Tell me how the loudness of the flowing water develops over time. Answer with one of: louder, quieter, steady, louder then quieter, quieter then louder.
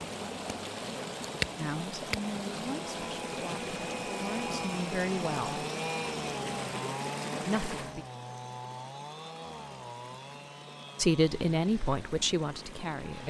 quieter.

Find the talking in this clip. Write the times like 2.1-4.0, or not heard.
1.6-5.6, 7.5-8.1, 10.9-13.2.